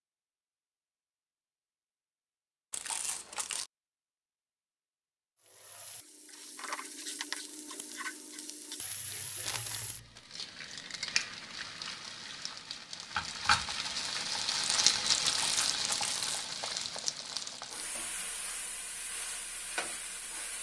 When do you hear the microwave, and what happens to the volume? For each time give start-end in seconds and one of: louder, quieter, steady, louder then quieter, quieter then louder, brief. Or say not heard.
not heard.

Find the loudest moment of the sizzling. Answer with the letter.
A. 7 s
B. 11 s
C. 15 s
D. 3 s
C.